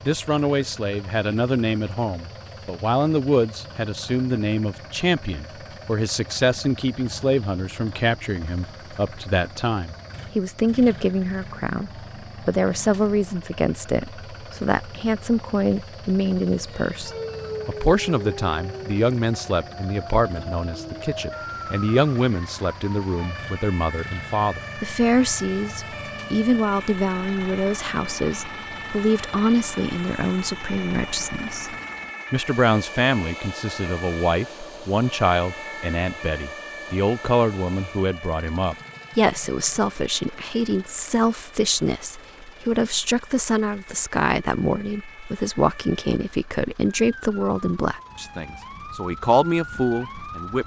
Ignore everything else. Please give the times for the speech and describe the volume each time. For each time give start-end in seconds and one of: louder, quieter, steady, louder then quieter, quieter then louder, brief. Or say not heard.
0.1-50.6 steady.